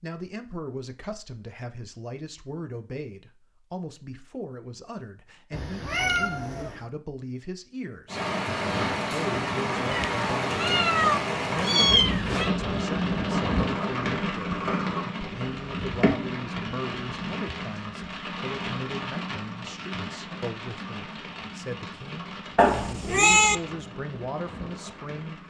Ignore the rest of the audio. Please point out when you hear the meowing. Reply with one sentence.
You can hear the meowing from 5.5 to 6.8 s, from 9.9 to 12.5 s and from 22.6 to 23.6 s.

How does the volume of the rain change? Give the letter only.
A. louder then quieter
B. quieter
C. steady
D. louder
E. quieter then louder
B.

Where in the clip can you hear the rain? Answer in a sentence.
The rain can be heard from 8.1 to 25.4 s.